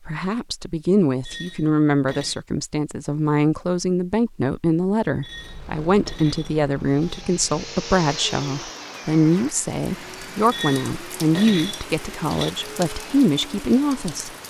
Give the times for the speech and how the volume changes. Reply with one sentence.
The speech can be heard from 0.1 to 14.3 s, at a steady volume.